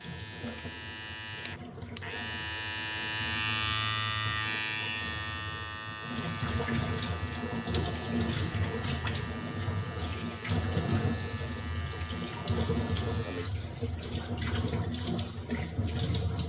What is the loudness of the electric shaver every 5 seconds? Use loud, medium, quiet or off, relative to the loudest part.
loud, medium, medium, off.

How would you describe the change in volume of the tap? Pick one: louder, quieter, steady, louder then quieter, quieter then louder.
louder.